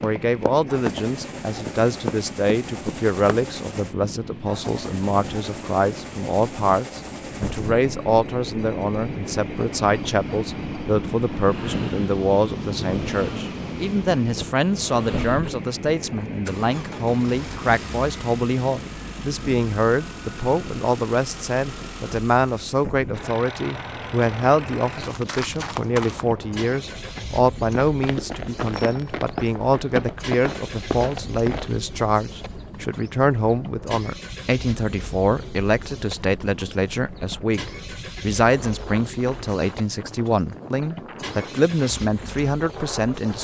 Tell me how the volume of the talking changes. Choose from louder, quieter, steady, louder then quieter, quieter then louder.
steady.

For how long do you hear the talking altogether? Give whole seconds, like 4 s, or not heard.
43 s.